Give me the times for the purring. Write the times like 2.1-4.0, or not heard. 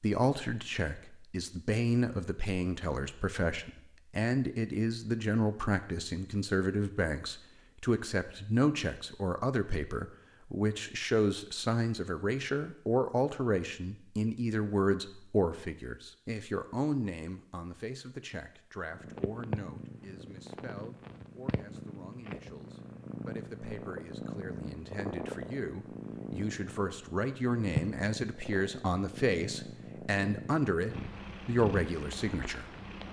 18.9-33.0.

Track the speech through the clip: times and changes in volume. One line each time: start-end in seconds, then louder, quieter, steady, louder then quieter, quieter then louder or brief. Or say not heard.
0.0-32.7 quieter then louder.